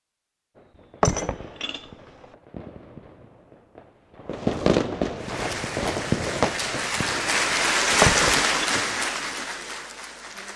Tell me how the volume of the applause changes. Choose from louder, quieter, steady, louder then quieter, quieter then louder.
louder then quieter.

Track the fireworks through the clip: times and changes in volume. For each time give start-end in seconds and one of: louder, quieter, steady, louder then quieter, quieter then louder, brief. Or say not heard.
0.6-8.4 louder then quieter.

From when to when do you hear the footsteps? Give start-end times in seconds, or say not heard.
not heard.